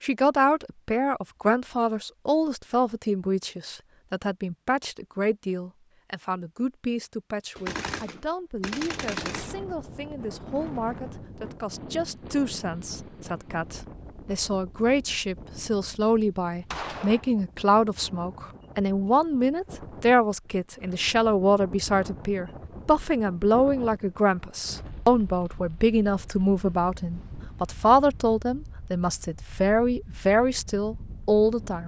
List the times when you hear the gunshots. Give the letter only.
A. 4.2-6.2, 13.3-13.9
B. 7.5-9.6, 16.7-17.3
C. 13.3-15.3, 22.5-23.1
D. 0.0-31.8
B.